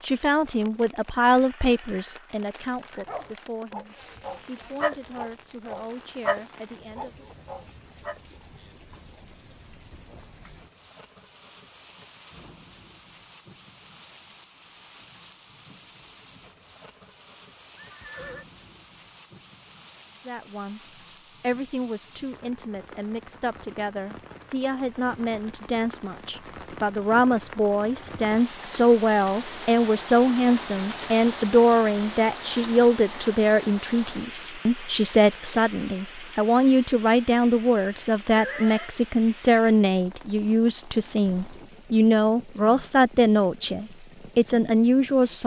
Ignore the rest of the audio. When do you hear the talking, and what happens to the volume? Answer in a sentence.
You can hear the talking from 0.0 to 7.2 s, getting quieter; briefly from 20.2 to 20.8 s; and from 21.4 to 45.4 s, getting louder.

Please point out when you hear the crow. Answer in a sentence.
You can't hear the crow here.